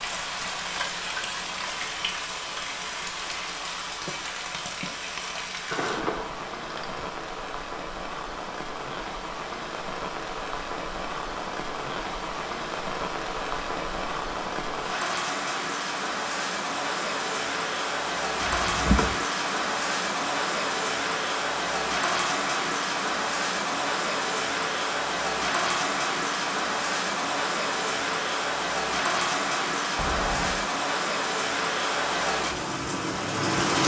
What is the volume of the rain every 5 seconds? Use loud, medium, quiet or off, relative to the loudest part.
medium, medium, medium, loud, loud, loud, loud.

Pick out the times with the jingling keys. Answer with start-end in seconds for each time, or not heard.
5.7-7.1, 18.4-19.1, 29.9-30.6.